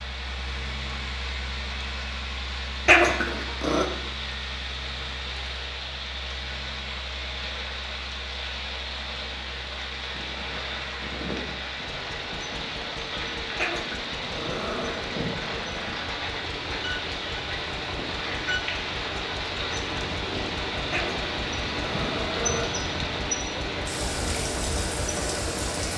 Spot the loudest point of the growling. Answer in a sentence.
The volume of the growling peaks at 3 seconds.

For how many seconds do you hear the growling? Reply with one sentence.
You can hear the growling for 4 seconds altogether.